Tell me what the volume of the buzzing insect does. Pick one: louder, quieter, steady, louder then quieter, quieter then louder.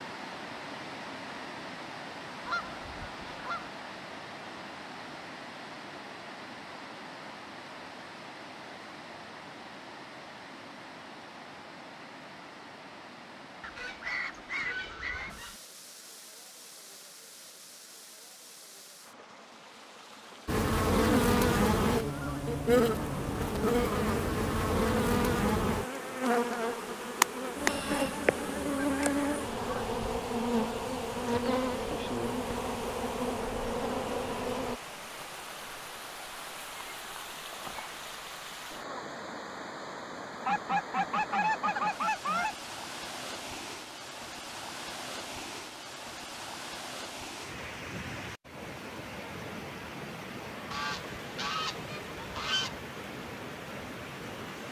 quieter.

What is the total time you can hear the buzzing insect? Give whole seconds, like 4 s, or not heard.
14 s.